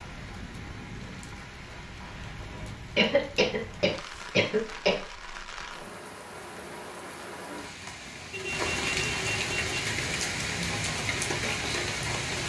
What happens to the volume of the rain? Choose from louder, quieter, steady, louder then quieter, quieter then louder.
louder.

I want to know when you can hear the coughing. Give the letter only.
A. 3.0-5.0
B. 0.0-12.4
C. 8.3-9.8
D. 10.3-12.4
A.